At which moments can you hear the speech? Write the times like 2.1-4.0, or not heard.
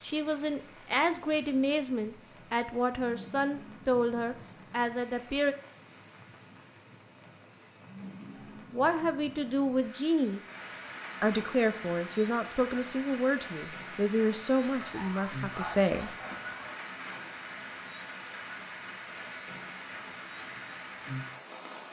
0.0-5.5, 8.7-10.4, 11.2-16.1.